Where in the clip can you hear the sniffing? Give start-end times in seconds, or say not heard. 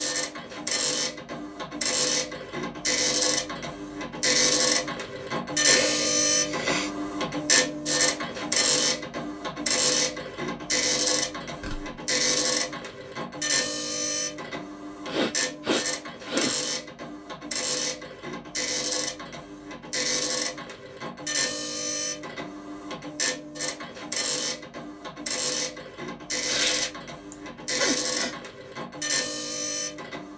5.7-6.9, 15.1-16.6, 27.3-28.4.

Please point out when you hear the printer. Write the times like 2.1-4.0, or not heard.
0.0-30.3.